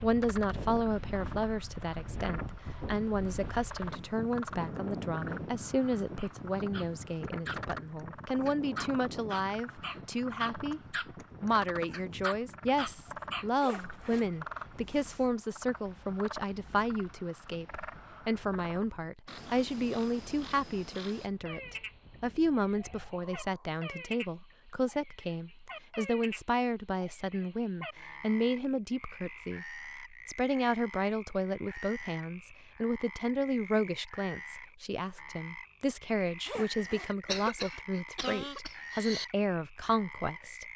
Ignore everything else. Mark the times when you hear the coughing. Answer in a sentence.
The coughing can be heard from 37.2 to 39.2 s.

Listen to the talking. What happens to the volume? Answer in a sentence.
The loudness of the talking stays about the same.